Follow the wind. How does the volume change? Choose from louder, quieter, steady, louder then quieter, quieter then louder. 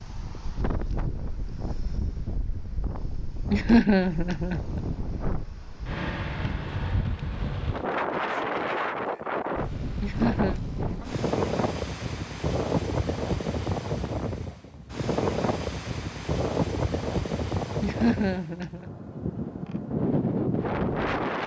louder.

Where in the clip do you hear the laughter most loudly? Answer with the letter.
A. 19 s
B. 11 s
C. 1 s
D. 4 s
D.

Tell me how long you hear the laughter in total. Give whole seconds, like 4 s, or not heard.
3 s.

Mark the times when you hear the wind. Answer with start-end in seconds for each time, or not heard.
0.0-21.4.